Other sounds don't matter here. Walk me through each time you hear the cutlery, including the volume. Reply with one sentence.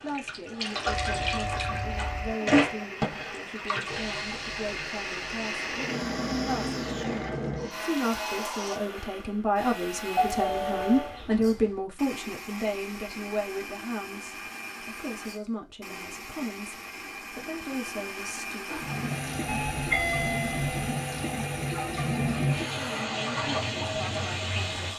You can't hear the cutlery here.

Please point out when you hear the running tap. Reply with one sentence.
The running tap can be heard from 0.0 to 8.8 s and from 18.6 to 24.9 s.